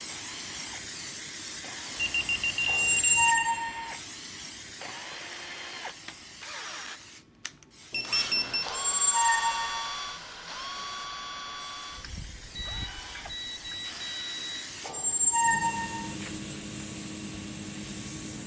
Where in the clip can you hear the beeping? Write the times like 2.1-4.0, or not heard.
1.9-3.5, 7.9-8.8, 12.5-14.7.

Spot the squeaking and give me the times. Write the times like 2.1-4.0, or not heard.
2.6-4.0, 8.7-9.9, 14.8-16.1.